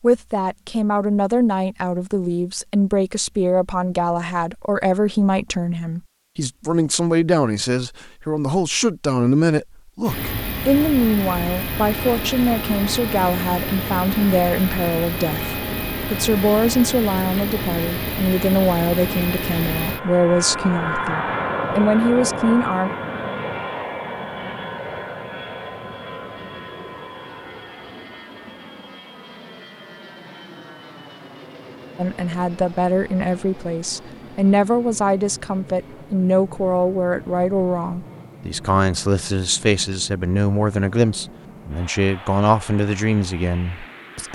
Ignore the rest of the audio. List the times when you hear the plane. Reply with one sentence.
You can hear the plane from 10.0 to 44.2 s.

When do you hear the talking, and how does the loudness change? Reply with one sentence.
You can hear the talking from 0.0 to 22.9 s, at a steady volume; and from 31.9 to 44.2 s, at a steady volume.